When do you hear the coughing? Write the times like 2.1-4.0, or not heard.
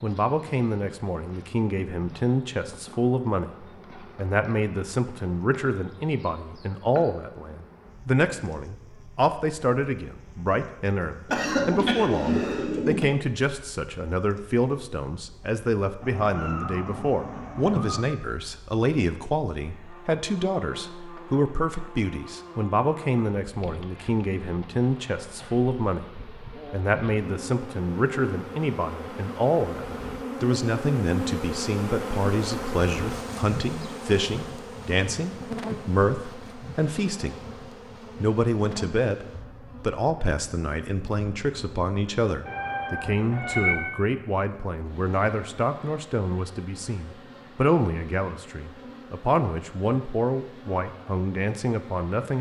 11.2-13.1.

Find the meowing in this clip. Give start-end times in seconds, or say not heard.
16.0-18.1, 42.5-43.9.